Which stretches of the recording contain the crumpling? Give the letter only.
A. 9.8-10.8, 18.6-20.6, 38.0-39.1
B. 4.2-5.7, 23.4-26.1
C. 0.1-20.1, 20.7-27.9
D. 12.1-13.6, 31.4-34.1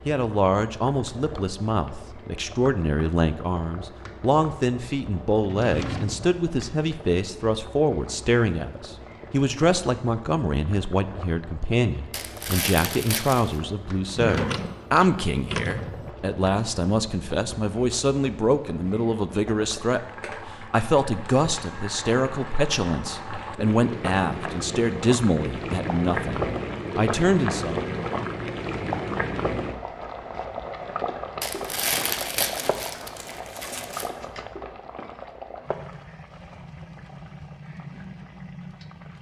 D.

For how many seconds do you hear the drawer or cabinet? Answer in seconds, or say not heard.
4 s.